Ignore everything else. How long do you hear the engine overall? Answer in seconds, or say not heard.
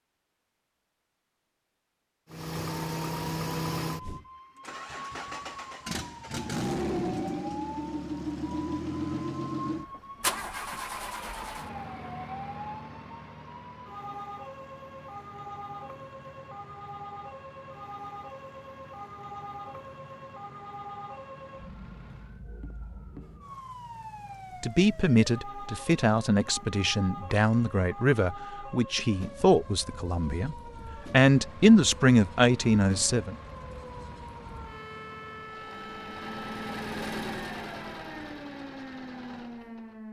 29 s.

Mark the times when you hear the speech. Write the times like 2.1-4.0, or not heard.
24.6-33.4.